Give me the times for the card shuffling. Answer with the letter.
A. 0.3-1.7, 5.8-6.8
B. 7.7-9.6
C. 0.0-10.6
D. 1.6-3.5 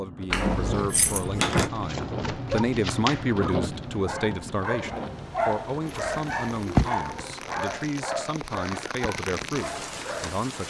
D.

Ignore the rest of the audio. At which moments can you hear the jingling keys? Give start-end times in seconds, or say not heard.
0.3-1.7, 5.8-6.8.